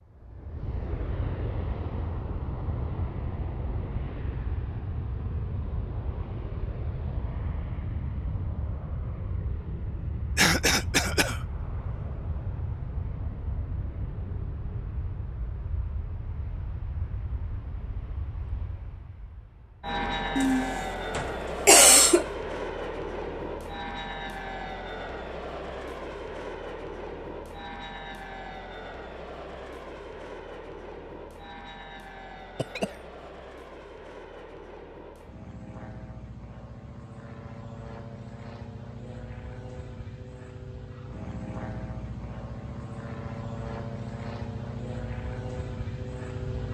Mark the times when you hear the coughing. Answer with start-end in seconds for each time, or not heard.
10.3-11.4, 20.4-22.2, 32.5-33.0.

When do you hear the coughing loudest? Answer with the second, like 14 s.
22 s.